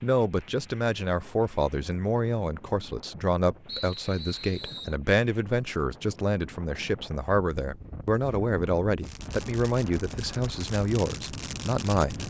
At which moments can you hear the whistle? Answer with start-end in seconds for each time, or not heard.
3.6-5.0.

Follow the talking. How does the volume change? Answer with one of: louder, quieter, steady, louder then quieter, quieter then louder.
steady.